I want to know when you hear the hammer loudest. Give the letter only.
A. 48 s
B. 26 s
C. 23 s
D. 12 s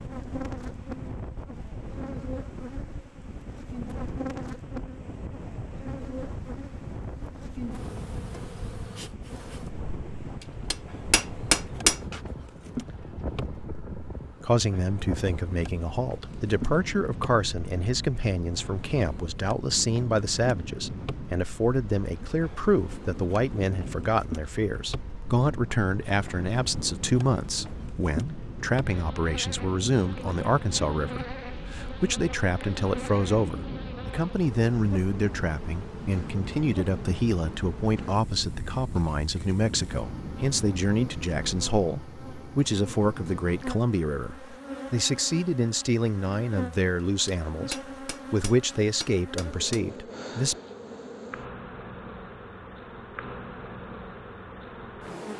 D.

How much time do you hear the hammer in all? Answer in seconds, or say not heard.
4 s.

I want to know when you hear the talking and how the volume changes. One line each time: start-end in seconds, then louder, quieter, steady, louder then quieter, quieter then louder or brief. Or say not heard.
14.4-50.5 steady.